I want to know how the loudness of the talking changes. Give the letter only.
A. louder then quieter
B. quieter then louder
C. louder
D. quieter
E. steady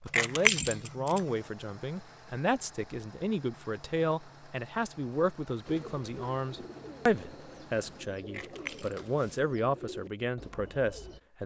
E.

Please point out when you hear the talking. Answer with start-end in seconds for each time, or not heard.
0.0-11.4.